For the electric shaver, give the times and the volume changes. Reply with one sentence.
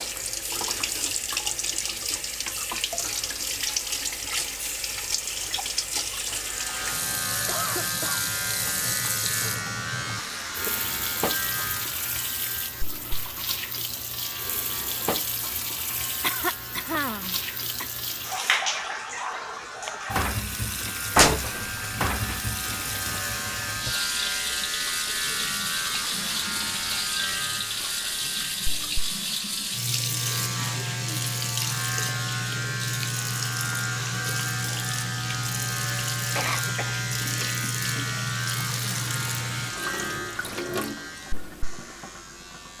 The electric shaver can be heard from 6.2 to 42.7 s, getting quieter then louder.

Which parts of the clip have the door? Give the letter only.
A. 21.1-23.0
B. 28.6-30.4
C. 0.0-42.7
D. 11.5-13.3
A.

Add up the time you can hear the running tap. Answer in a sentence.
You can hear the running tap for 43 seconds altogether.